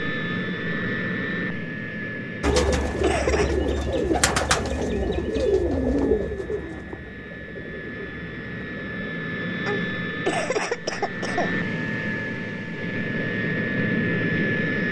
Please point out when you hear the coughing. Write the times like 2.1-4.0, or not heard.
2.4-3.5, 9.7-11.6.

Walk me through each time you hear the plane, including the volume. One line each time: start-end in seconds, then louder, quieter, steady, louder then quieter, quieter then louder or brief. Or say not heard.
0.0-14.8 quieter then louder.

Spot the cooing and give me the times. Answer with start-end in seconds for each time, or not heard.
2.4-9.2.